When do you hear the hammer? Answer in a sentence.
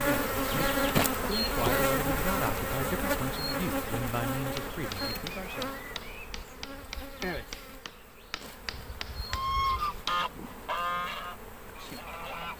The hammer can be heard from 4.3 to 10.3 s.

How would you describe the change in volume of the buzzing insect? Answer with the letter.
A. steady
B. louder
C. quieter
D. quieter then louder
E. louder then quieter
C.